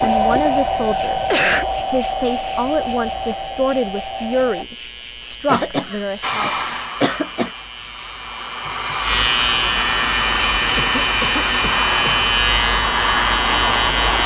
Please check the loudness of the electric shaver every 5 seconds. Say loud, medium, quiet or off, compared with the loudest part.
quiet, medium, loud.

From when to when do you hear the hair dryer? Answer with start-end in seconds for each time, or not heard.
0.0-4.7, 6.2-14.2.